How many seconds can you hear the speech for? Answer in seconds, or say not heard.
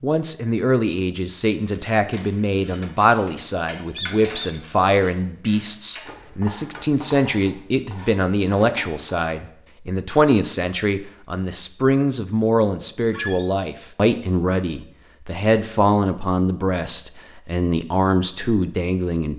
19 s.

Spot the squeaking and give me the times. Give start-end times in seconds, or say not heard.
4.0-4.6, 13.1-13.6.